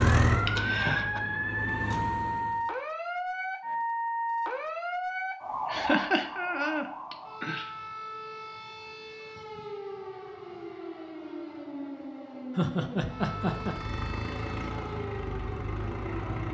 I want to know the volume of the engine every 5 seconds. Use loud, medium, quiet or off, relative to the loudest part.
loud, off, medium, medium.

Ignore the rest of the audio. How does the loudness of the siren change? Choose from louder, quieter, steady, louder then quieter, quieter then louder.
quieter.